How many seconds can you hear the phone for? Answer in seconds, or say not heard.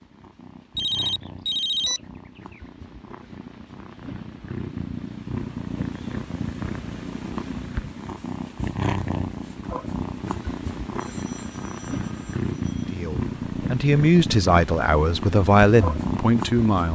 4 s.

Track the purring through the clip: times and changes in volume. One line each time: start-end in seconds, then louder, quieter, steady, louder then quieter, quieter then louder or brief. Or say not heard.
0.0-16.9 louder.